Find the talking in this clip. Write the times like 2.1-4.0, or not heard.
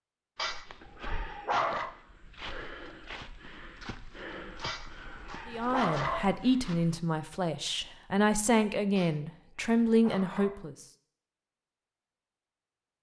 5.5-10.8.